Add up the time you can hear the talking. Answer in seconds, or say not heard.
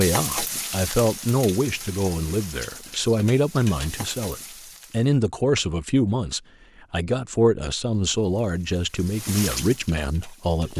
11 s.